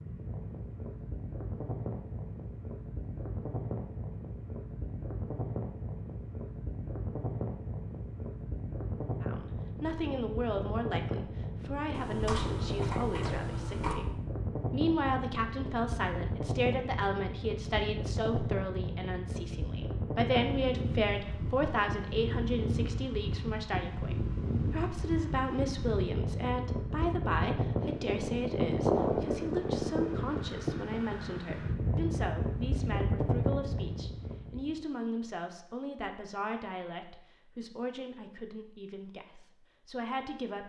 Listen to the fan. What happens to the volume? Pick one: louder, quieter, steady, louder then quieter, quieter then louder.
louder.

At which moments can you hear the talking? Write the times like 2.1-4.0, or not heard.
9.2-40.6.